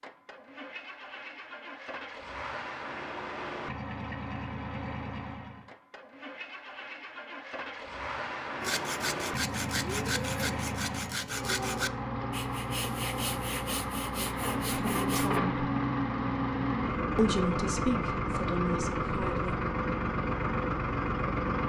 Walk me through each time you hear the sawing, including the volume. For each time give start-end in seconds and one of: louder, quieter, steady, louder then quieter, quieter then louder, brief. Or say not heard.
8.6-15.4 quieter.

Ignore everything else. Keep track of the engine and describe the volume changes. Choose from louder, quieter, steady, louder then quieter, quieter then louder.
louder.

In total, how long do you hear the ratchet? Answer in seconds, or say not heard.
not heard.